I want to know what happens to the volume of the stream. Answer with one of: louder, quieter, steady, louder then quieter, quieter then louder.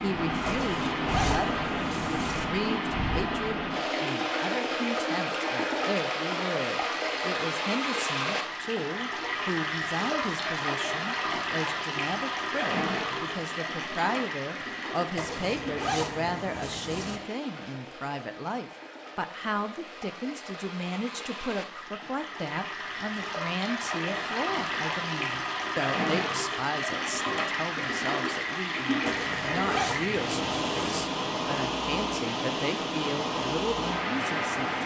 quieter then louder.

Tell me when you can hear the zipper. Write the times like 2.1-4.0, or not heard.
0.5-2.5, 15.2-17.2, 29.1-31.1.